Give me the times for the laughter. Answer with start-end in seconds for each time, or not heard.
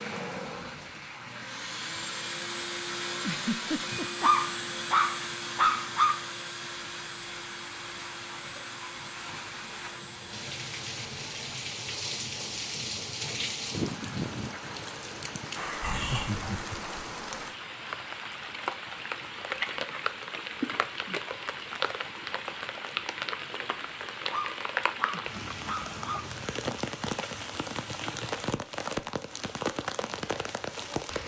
3.2-4.2, 15.8-16.9, 25.1-26.2.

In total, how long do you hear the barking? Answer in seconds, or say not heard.
4 s.